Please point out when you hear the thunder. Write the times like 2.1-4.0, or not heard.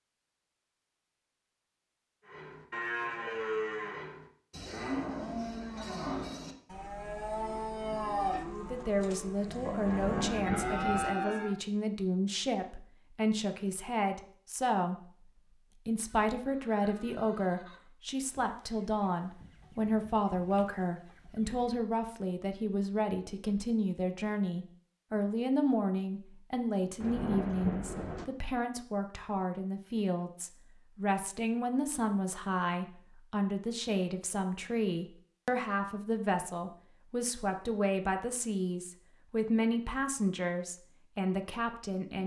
9.8-11.1, 27.0-28.2.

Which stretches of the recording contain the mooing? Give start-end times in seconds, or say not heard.
2.2-11.6.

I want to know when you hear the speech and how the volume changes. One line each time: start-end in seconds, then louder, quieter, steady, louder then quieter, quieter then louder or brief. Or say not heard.
8.4-15.2 steady
15.8-42.2 steady.